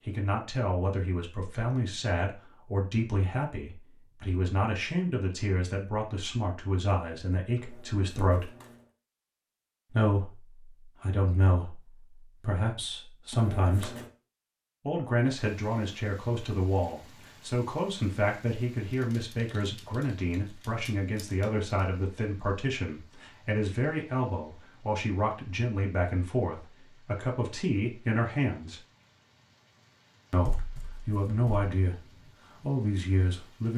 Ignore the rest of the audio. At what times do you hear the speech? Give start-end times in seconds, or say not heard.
0.0-8.5, 9.9-13.9, 14.8-28.8, 30.3-32.0, 32.6-33.7.